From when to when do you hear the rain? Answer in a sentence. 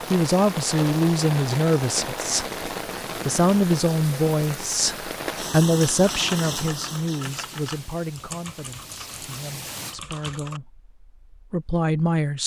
The rain can be heard from 0.0 to 9.9 s.